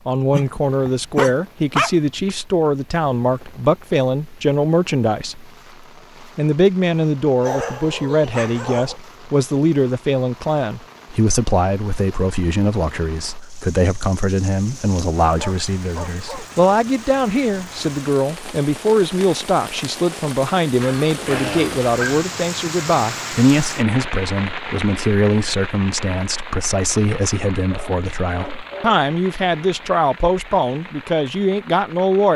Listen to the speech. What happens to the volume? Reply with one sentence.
The volume of the speech stays about the same.